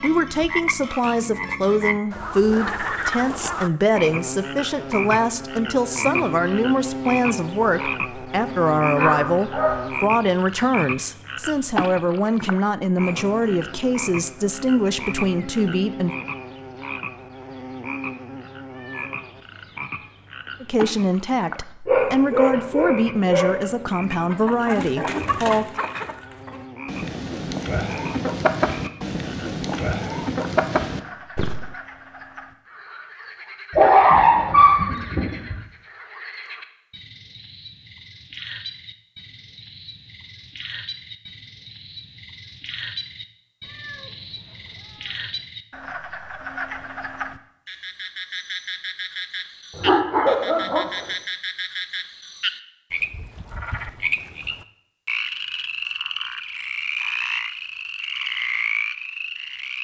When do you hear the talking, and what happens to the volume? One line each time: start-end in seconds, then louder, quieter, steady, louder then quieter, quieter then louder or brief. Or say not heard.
0.0-16.1 steady
20.6-25.7 steady.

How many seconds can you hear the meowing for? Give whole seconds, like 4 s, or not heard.
3 s.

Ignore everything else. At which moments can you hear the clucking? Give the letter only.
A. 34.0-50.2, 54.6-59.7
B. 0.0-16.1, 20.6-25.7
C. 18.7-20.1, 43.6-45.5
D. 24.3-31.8
D.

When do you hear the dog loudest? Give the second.
34 s.